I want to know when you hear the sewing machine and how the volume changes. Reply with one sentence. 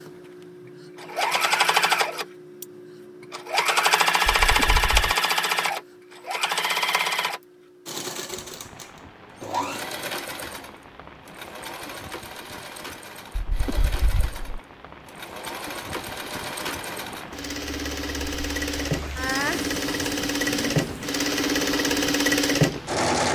You can hear the sewing machine from 0.0 to 23.3 s, getting quieter then louder.